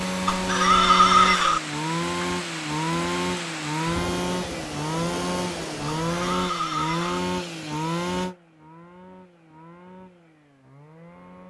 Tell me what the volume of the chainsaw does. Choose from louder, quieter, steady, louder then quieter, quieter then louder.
quieter.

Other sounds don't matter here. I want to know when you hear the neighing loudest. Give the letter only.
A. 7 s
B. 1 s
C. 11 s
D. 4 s
B.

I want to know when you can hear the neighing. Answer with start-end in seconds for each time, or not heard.
0.2-1.6, 6.1-7.2.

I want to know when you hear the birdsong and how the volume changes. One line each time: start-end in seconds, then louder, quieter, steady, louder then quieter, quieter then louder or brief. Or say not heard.
not heard.